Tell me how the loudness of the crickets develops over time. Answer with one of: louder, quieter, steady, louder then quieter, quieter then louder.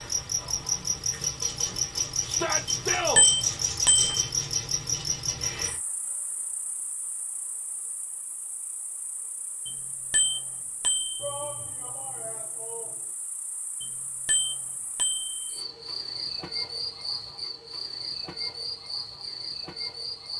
quieter then louder.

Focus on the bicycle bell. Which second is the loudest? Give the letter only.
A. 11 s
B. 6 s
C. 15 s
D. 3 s
D.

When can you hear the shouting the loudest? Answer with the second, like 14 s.
3 s.